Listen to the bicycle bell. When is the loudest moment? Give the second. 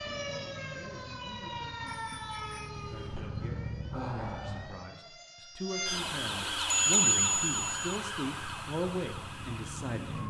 7 s.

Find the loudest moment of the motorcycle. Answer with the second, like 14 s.
4 s.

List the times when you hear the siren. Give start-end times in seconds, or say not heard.
0.0-10.2.